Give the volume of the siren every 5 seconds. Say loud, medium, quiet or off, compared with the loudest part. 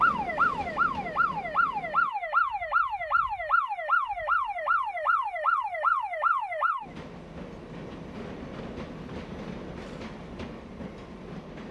loud, loud, off.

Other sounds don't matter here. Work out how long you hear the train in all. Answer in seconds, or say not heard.
7 s.